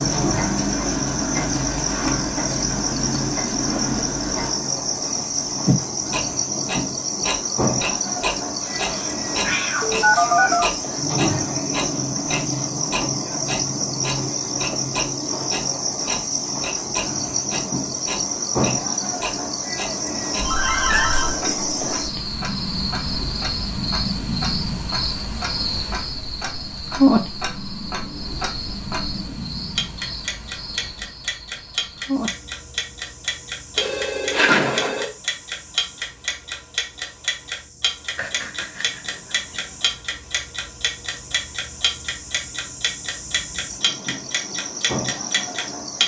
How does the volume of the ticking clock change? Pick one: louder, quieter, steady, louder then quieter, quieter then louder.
quieter then louder.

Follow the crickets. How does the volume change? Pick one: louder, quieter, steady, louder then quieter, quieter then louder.
quieter.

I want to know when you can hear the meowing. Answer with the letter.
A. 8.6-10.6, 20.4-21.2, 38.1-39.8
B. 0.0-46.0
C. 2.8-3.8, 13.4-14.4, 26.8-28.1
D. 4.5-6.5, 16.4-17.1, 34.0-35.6
A.